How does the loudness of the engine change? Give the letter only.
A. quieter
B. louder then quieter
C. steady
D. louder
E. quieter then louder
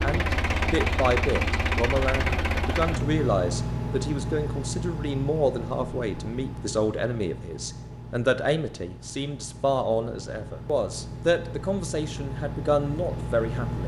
E.